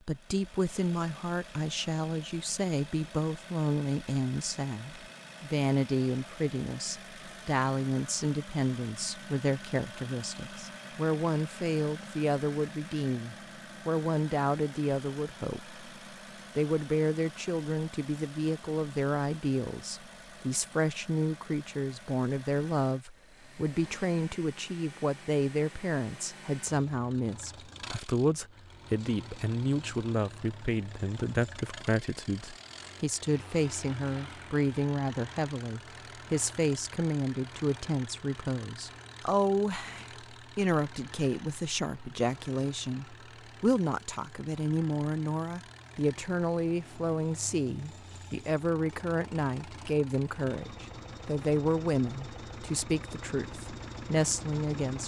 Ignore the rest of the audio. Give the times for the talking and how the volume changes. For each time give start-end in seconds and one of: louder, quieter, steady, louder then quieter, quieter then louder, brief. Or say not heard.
0.1-15.8 steady
16.6-55.0 steady.